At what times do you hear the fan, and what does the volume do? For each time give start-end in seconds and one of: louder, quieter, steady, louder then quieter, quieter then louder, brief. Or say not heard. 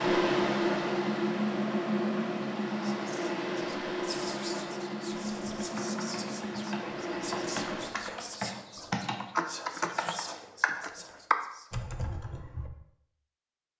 0.0-8.0 quieter.